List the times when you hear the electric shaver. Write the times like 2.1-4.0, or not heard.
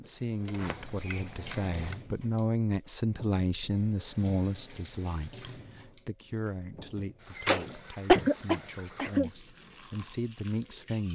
not heard.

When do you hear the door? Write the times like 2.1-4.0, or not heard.
0.5-1.9, 7.3-8.0.